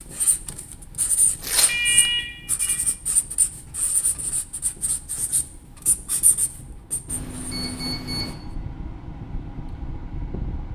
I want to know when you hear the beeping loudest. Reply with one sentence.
The volume of the beeping peaks at 2 seconds.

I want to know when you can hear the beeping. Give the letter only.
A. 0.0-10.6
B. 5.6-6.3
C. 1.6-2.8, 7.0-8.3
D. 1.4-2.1
C.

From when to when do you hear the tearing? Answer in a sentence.
You can hear the tearing from 1.4 to 2.1 s.